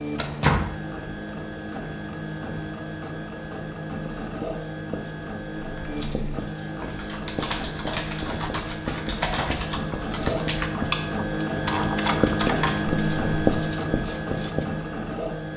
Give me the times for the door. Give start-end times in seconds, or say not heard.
0.1-0.8, 9.1-9.7.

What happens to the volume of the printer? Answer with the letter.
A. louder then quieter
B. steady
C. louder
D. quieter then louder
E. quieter
C.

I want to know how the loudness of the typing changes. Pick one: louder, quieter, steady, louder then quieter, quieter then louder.
louder.